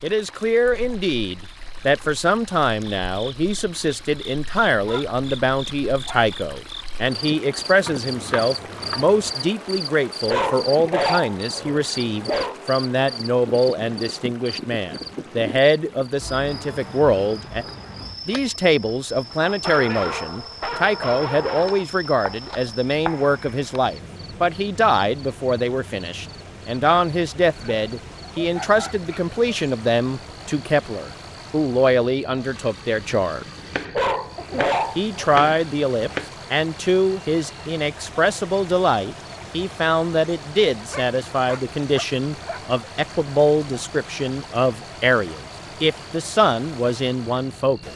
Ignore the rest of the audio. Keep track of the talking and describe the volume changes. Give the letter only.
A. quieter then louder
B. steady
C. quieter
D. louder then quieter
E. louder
B.